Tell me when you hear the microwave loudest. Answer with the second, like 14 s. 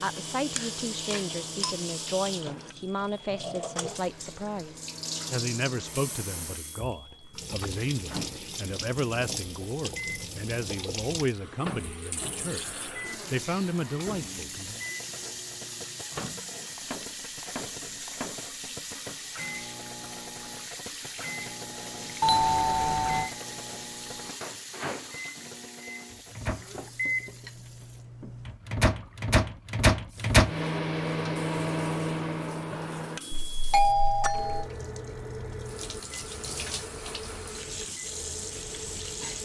30 s.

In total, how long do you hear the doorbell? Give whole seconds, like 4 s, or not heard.
4 s.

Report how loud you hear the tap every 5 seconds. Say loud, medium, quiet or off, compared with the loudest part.
loud, loud, loud, loud, loud, medium, medium, loud.